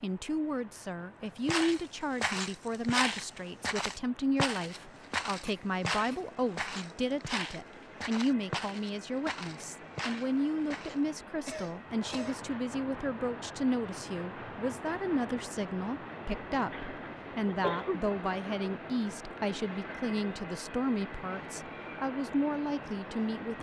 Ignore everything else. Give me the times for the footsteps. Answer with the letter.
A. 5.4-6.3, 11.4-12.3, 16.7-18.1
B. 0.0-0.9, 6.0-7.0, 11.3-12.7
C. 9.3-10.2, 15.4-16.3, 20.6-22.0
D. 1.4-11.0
D.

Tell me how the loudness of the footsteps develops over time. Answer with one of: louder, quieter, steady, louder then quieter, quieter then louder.
quieter.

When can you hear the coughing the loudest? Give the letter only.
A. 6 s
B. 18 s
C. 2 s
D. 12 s
B.